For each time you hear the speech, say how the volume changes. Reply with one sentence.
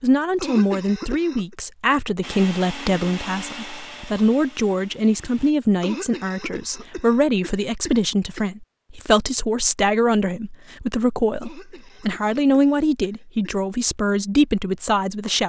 You can hear the speech from 0.0 to 15.4 s, at a steady volume.